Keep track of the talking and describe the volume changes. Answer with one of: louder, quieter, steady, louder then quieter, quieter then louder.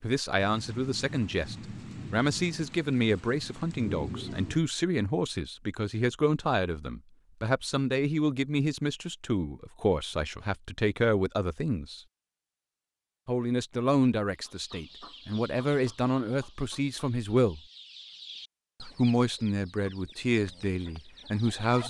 steady.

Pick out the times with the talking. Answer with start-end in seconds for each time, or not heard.
0.0-12.0, 13.2-17.6, 18.8-21.8.